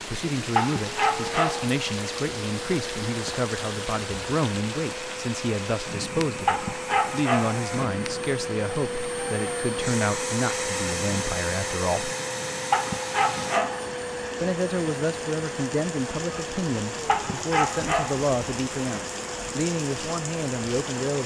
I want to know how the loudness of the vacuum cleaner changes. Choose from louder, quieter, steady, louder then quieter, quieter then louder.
louder then quieter.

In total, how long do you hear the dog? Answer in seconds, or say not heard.
5 s.